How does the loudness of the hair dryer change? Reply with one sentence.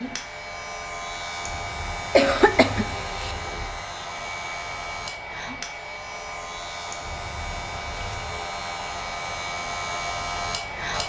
The volume of the hair dryer stays about the same.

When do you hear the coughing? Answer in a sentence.
You can hear the coughing from 2.1 to 3.4 s.